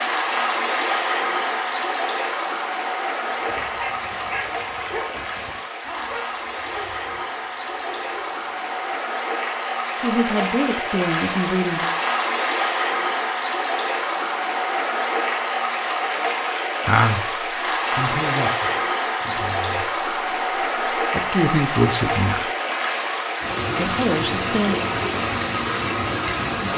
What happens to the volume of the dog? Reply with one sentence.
The loudness of the dog goes down.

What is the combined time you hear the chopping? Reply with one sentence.
The chopping can't be heard in this clip.